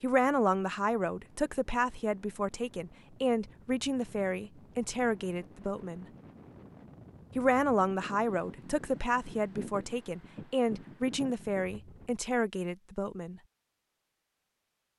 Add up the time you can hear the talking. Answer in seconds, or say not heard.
12 s.